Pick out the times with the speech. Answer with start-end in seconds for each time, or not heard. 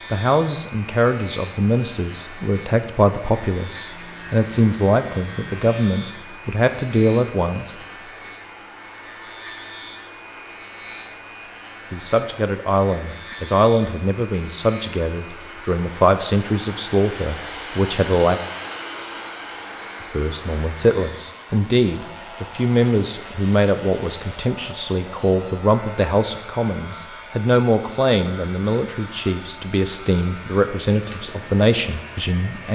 0.1-7.8, 11.9-18.4, 20.1-32.6.